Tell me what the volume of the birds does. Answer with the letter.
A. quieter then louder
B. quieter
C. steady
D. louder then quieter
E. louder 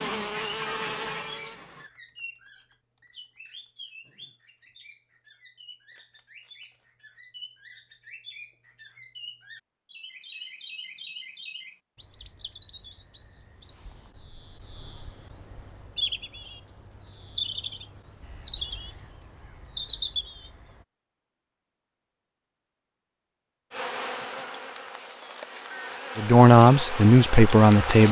E.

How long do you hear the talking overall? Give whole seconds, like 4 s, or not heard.
2 s.